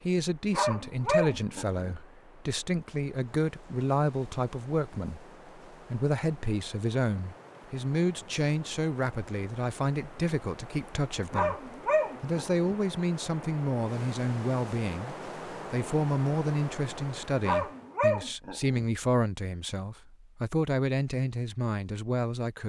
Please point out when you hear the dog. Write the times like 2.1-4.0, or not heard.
0.5-1.9, 11.3-12.8, 17.4-18.9.